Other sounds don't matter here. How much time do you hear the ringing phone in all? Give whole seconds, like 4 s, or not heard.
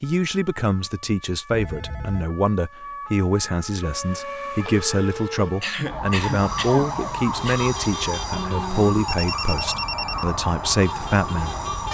4 s.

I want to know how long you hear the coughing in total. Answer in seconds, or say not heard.
2 s.